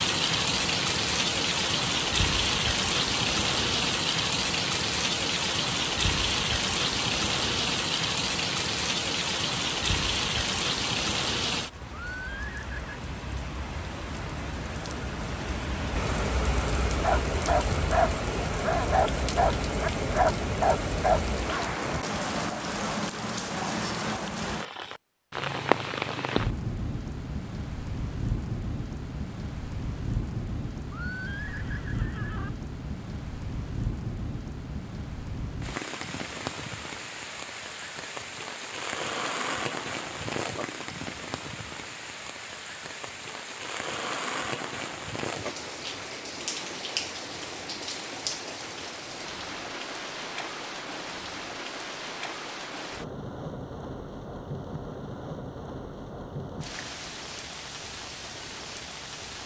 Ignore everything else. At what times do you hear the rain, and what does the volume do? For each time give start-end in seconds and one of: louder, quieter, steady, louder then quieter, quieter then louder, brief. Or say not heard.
0.0-59.4 quieter.